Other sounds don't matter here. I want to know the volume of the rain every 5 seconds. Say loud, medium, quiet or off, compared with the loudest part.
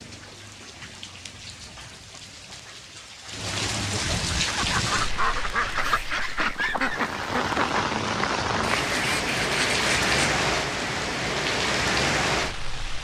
medium, loud, loud.